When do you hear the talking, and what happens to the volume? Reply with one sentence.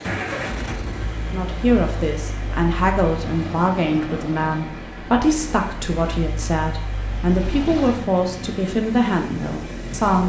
The talking can be heard from 1.3 to 10.2 s, at a steady volume.